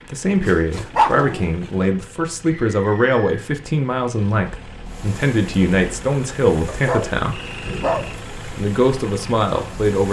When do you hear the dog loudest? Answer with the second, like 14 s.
1 s.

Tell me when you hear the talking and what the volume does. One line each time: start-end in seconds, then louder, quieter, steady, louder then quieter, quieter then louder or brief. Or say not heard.
0.1-7.4 steady
8.6-10.0 brief.